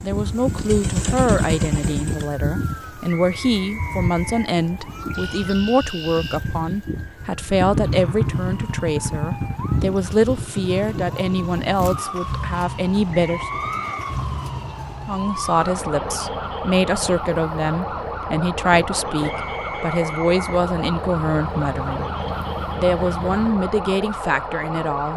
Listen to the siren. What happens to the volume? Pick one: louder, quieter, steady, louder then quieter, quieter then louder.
steady.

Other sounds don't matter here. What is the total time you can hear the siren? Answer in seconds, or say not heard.
25 s.